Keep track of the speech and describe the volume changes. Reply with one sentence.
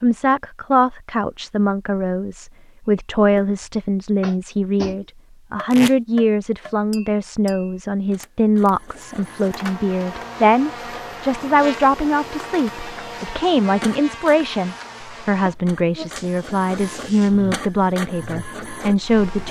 The loudness of the speech stays about the same.